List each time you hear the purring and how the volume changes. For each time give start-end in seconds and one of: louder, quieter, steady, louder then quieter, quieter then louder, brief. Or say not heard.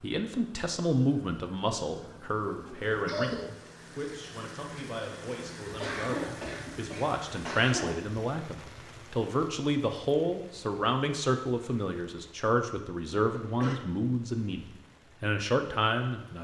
not heard.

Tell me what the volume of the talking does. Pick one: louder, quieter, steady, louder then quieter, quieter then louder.
quieter then louder.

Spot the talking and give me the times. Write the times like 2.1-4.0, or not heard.
0.0-16.3.